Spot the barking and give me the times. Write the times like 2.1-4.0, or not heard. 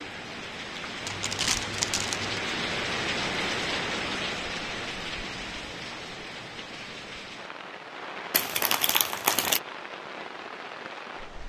not heard.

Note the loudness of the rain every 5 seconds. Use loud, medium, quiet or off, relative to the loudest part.
loud, medium, medium.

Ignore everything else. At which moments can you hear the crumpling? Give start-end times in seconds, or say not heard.
1.1-2.5, 8.3-9.6.